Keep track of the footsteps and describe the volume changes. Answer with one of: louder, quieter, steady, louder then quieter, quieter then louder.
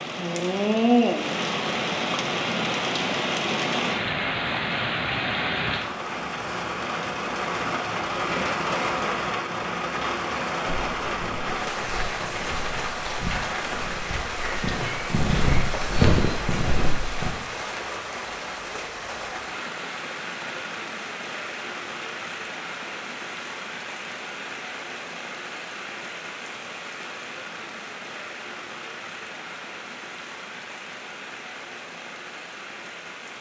louder.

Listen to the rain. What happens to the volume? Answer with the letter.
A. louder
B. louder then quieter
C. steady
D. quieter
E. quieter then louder
D.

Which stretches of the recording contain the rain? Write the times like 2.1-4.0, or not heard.
0.0-33.3.